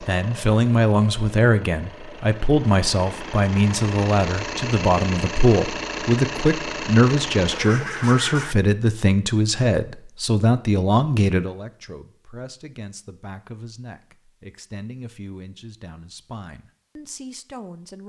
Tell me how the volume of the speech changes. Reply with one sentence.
The loudness of the speech goes down.